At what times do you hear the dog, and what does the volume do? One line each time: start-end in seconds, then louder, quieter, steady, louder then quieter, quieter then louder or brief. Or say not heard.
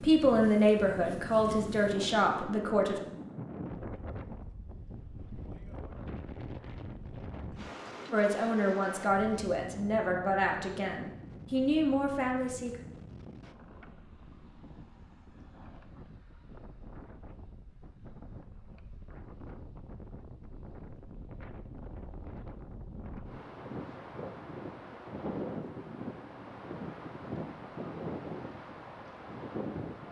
not heard.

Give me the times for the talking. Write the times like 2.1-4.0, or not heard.
0.0-3.0, 8.1-12.8.